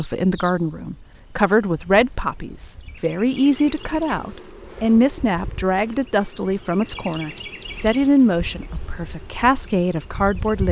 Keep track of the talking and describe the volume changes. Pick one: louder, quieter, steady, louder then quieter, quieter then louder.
steady.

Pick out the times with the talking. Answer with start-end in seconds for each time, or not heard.
0.0-10.6.